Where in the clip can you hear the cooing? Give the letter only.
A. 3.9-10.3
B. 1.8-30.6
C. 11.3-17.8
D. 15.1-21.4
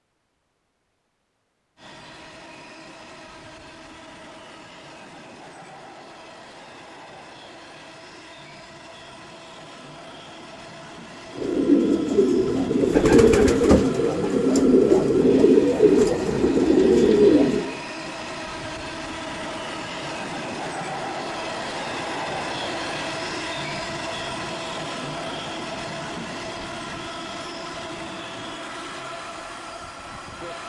C.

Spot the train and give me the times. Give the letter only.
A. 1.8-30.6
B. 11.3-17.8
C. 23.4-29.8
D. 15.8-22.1
A.